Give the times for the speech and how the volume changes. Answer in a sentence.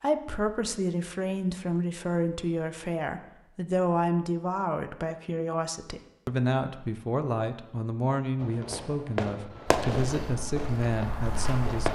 The speech can be heard from 0.0 to 11.8 s, at a steady volume.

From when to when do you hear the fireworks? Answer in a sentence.
The fireworks can be heard from 8.4 to 11.8 s.